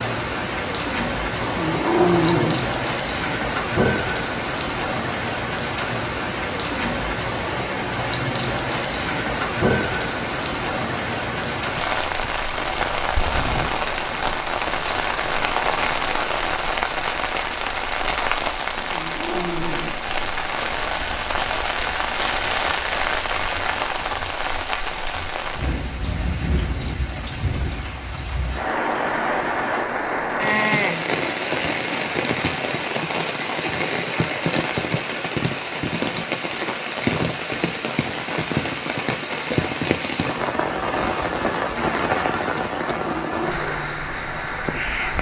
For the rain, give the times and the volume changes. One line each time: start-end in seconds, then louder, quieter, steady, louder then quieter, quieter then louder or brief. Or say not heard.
0.0-45.1 steady.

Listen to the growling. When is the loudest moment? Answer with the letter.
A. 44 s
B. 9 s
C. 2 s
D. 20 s
C.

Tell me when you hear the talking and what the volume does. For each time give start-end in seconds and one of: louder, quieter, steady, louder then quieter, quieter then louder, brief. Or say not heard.
not heard.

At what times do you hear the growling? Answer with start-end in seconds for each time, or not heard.
1.4-2.9, 18.8-20.0, 43.0-43.5.